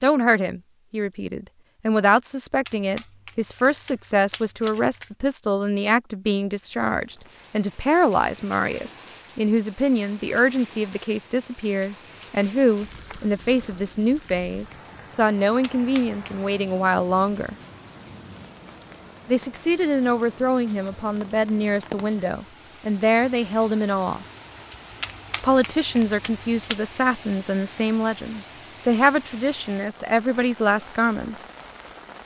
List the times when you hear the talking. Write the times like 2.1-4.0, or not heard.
0.0-17.6, 19.2-24.2, 25.4-31.4.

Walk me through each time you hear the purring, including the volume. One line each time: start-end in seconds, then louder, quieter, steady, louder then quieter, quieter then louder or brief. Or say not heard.
not heard.